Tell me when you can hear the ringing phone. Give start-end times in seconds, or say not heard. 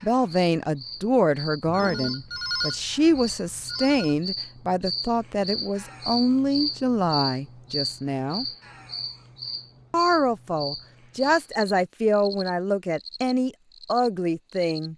1.6-4.2.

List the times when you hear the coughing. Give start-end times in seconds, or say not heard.
not heard.